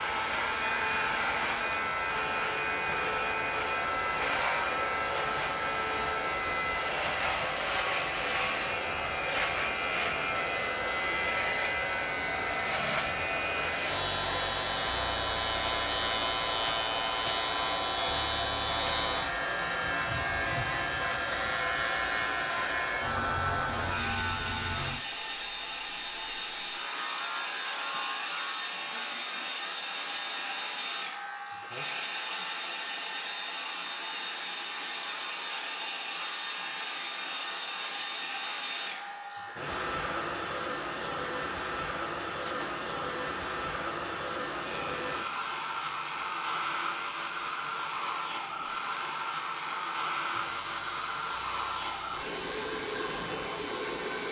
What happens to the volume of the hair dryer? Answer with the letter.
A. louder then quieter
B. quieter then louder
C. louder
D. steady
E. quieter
D.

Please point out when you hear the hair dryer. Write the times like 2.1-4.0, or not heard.
0.0-54.2.